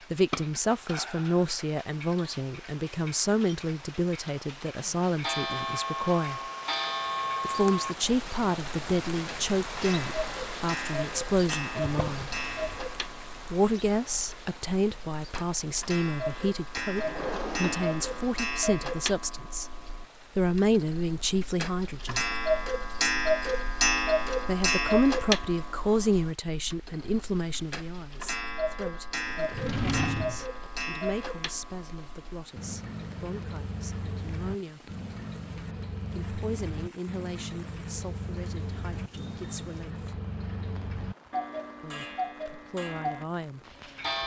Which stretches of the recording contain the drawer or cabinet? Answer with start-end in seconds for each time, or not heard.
11.8-12.8, 16.9-18.4, 29.5-30.4.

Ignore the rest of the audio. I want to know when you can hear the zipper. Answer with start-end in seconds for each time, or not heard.
not heard.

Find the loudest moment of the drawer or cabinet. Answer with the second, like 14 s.
30 s.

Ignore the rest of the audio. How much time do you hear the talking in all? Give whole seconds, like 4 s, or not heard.
37 s.